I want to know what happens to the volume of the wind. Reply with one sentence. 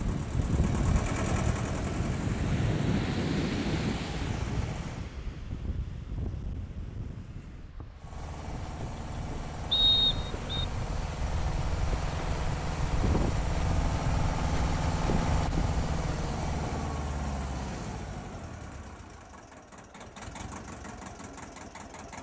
The volume of the wind goes down, then up.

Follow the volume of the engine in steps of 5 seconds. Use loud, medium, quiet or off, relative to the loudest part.
loud, medium, loud, loud, medium.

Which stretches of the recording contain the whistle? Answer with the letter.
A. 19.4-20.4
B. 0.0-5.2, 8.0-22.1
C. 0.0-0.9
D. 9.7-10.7
D.